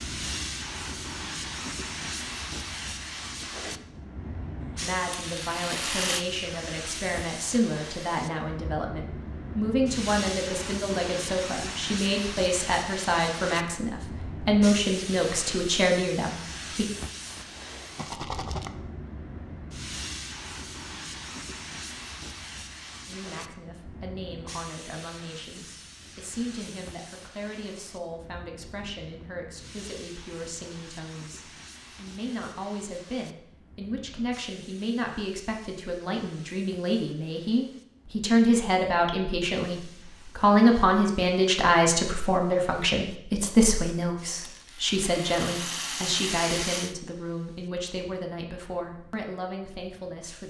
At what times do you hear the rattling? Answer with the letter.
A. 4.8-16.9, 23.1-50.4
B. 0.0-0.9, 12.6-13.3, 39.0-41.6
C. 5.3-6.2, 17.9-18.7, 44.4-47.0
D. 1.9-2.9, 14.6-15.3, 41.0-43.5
C.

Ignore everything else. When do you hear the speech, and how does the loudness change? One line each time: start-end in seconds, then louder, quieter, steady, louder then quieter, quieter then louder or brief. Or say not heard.
4.8-16.9 louder
23.1-50.4 louder then quieter.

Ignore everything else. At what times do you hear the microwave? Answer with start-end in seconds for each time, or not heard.
not heard.